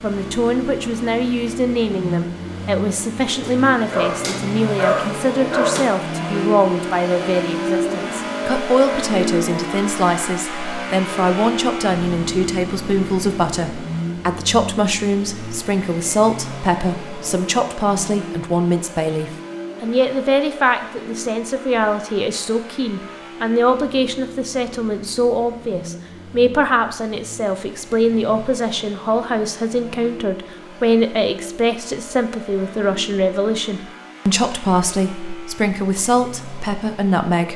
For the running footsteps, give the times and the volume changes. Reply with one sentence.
You can't hear the running footsteps here.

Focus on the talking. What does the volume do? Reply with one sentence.
The volume of the talking stays about the same.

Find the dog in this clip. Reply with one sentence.
The dog can be heard from 3.4 to 6.0 s.